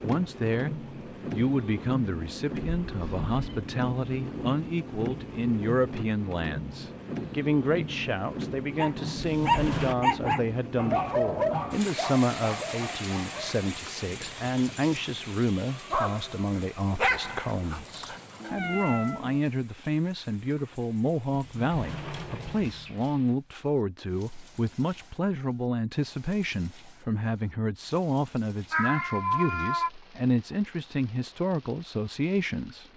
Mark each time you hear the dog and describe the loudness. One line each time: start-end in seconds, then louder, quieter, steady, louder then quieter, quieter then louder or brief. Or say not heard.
8.8-18.5 quieter then louder.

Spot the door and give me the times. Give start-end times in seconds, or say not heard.
9.2-9.9, 21.3-23.2.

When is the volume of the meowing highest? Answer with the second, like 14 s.
29 s.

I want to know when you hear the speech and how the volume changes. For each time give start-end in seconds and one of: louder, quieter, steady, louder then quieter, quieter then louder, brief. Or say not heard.
0.0-32.9 steady.